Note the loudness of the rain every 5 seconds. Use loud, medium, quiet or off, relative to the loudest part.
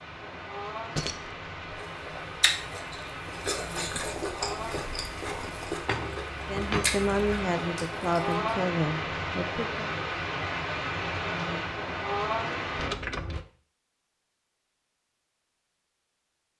medium, loud, loud, off.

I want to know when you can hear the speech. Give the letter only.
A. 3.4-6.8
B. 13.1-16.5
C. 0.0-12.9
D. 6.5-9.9
D.